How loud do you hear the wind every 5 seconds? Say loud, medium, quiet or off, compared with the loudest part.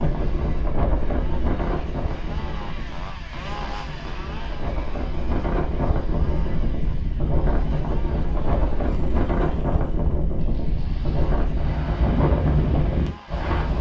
medium, loud, loud.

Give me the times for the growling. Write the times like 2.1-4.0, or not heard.
8.2-9.9.